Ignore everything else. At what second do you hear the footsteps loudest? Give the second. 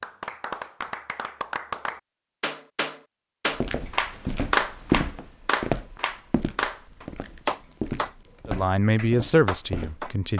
5 s.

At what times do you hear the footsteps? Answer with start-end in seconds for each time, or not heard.
3.6-9.9.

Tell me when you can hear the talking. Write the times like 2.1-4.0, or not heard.
8.4-10.3.